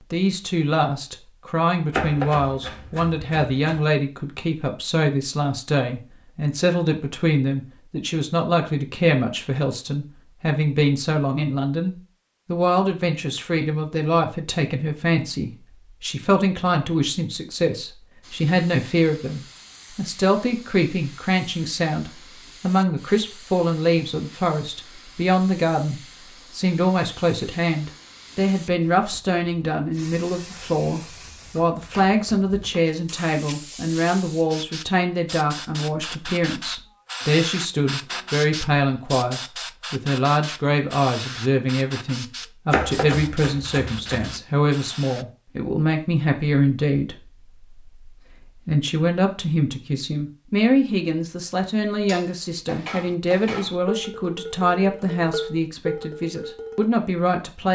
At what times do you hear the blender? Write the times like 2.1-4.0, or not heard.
not heard.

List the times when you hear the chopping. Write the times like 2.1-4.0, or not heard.
1.9-3.8, 42.7-44.4.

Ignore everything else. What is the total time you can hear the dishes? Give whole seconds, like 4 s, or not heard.
5 s.